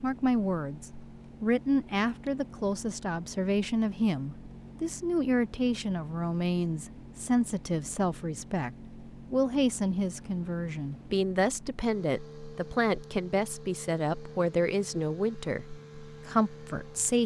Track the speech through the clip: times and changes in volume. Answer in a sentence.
You can hear the speech from 0.0 to 17.2 s, at a steady volume.